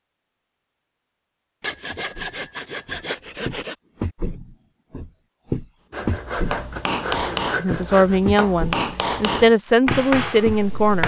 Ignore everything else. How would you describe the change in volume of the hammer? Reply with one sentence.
The volume of the hammer goes down, then up.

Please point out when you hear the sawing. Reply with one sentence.
You can hear the sawing from 1.6 to 3.8 s and from 5.9 to 8.2 s.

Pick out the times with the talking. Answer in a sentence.
The talking can be heard from 7.2 to 11.0 s.